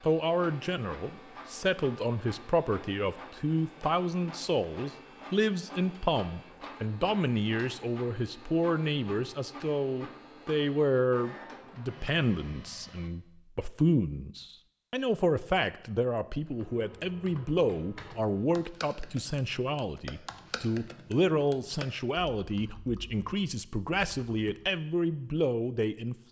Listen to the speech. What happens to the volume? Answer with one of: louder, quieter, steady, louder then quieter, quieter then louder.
steady.